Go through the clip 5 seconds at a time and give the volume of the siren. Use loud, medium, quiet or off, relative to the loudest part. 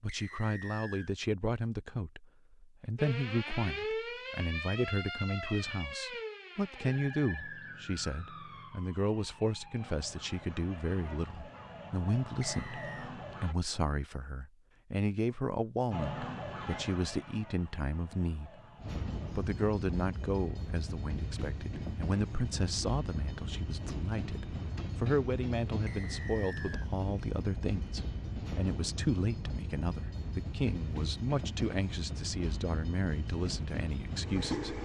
loud, medium, medium, medium, off, off, off.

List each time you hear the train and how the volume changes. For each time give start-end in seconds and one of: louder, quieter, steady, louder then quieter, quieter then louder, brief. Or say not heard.
18.8-34.8 steady.